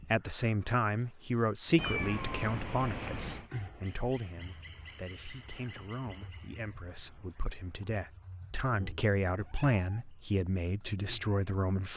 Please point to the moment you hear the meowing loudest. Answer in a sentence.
The volume of the meowing peaks at 2 seconds.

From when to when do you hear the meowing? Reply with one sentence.
You can hear the meowing from 1.8 to 3.5 s and from 9.3 to 10.1 s.